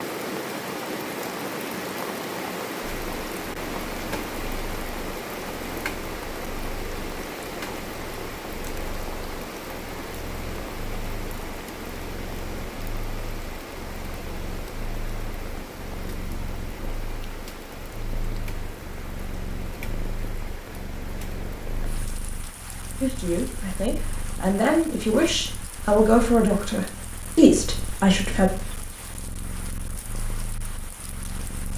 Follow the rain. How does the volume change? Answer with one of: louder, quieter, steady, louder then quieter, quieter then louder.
quieter.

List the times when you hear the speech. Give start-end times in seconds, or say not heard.
23.0-28.5.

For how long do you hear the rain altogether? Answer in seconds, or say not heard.
32 s.